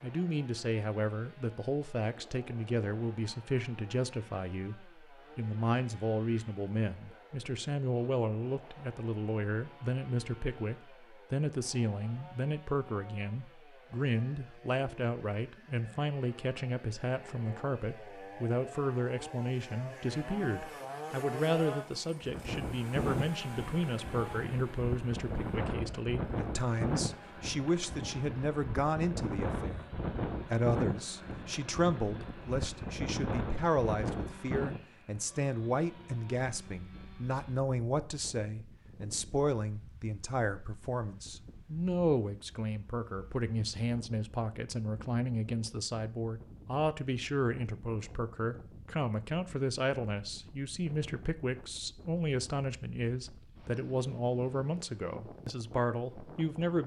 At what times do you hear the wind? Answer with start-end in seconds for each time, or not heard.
22.2-56.8.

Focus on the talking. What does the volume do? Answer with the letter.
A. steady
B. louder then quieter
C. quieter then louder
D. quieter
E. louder
A.